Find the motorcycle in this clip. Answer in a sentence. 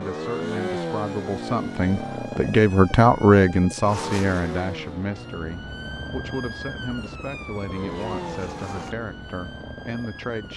You can hear the motorcycle from 0.0 to 10.5 s.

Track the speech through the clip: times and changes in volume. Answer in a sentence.
You can hear the speech from 0.0 to 10.5 s, getting louder then quieter.